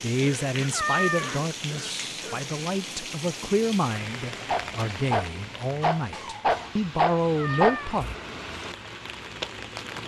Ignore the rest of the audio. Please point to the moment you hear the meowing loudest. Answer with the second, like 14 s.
1 s.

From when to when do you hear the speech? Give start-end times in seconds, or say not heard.
0.0-8.1.